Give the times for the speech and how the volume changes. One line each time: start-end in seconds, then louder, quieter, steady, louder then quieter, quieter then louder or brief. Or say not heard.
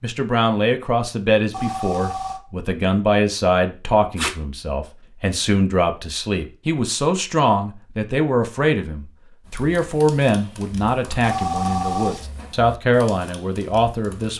0.0-14.3 steady.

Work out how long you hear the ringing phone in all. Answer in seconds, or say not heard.
2 s.